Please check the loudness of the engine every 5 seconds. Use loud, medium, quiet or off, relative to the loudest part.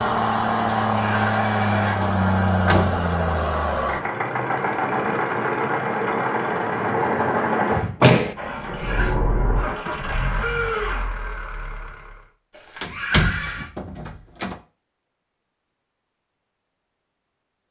loud, loud, medium, off.